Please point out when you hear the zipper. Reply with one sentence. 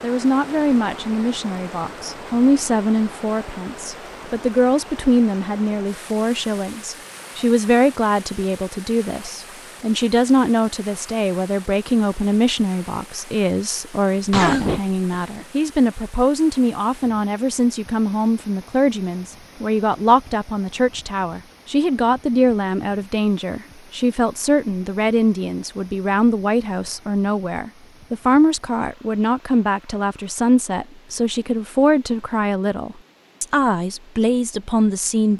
You can't hear the zipper here.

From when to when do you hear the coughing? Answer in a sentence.
The coughing can be heard from 14.3 to 15.4 s.